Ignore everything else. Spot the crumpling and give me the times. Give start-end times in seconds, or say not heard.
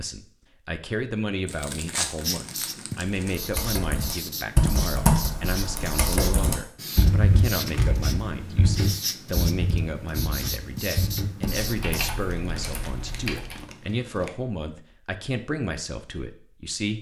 1.4-3.4, 7.5-8.1, 12.2-14.3.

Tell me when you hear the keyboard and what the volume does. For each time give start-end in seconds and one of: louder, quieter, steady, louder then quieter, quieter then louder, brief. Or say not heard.
3.2-13.7 quieter.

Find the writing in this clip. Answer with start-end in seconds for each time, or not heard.
2.2-12.1.